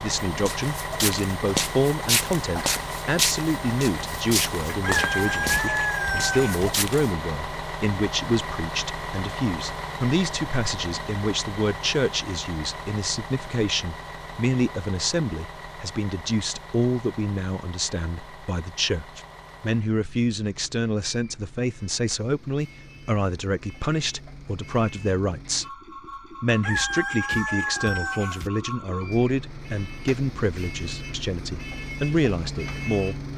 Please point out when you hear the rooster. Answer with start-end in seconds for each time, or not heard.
4.7-6.7, 26.4-28.5.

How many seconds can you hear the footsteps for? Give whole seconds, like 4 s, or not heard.
7 s.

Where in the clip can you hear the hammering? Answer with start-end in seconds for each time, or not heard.
not heard.